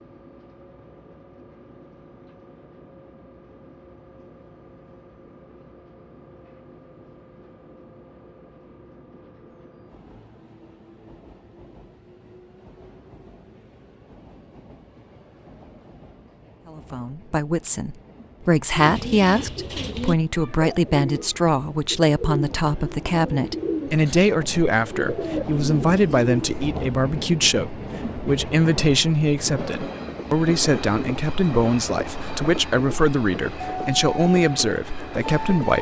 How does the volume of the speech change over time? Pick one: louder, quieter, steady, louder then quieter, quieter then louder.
steady.